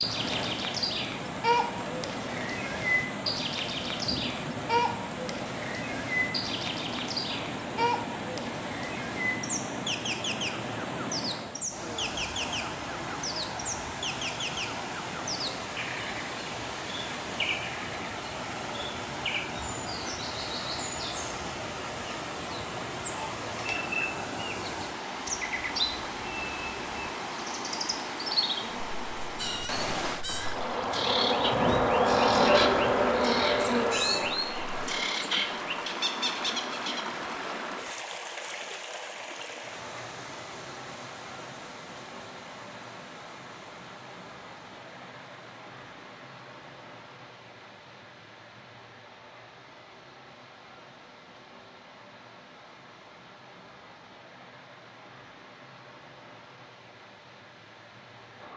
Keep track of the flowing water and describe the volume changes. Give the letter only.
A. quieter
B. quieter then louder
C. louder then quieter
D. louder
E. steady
A.